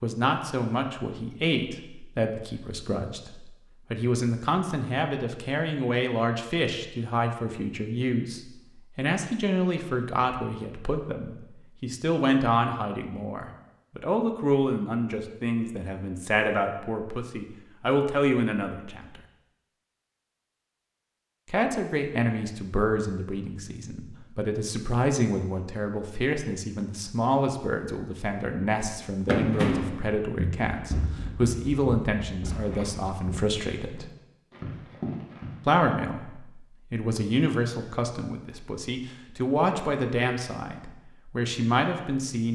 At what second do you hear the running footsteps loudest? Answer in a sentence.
The loudest moment of the running footsteps is at 29 seconds.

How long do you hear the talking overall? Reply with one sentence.
You can hear the talking for 39 seconds altogether.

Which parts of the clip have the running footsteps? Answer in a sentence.
You can hear the running footsteps from 28.8 to 35.8 s.